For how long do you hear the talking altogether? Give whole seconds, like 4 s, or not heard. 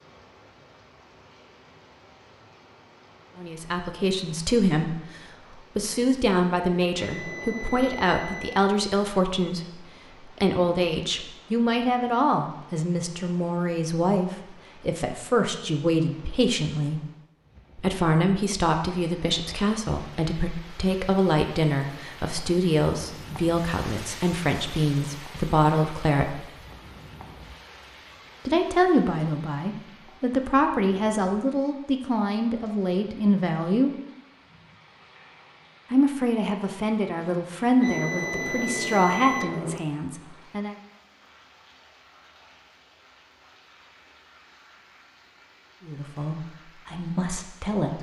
35 s.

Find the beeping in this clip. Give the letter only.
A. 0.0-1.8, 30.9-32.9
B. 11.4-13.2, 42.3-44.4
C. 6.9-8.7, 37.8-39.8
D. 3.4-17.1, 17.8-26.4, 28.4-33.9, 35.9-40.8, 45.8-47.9
C.